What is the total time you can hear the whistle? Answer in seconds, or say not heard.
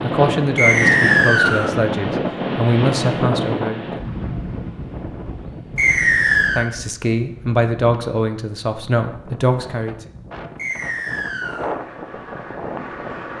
3 s.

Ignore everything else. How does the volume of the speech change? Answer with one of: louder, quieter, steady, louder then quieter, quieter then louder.
steady.